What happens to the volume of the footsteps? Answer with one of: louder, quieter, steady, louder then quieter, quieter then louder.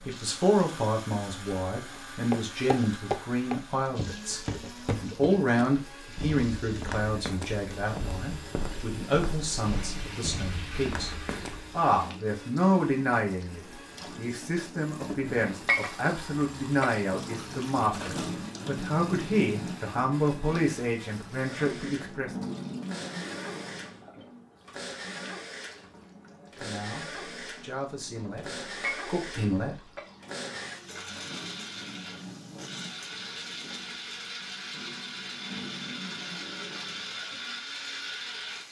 quieter.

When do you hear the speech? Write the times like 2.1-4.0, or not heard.
0.0-22.3, 26.6-29.8.